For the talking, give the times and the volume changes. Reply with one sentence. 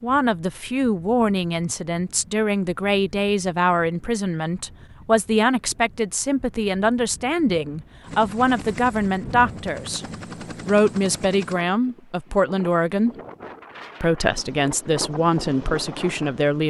The talking can be heard from 0.0 to 13.2 s, at a steady volume; and briefly from 14.0 to 16.6 s.